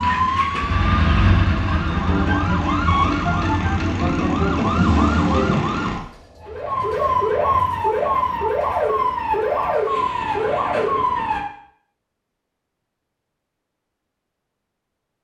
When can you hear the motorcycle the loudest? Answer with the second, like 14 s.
1 s.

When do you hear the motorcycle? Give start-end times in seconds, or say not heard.
0.0-5.0.